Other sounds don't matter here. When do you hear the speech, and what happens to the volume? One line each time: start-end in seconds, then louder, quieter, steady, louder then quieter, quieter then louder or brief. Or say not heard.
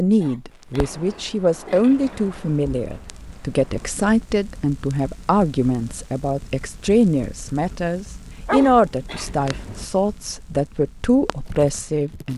0.0-12.3 steady.